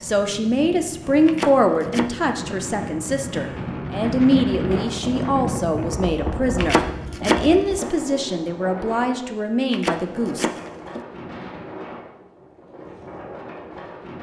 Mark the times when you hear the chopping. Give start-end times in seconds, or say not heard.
1.2-2.4, 6.5-7.9, 9.7-11.1.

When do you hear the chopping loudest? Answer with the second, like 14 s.
7 s.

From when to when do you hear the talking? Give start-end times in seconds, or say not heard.
0.0-10.4.